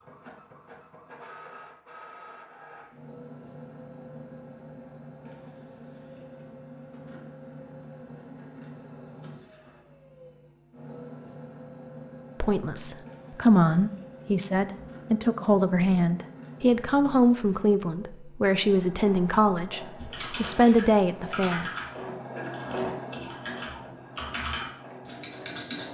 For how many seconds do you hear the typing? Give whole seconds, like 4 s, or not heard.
6 s.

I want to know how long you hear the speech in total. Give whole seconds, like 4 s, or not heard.
9 s.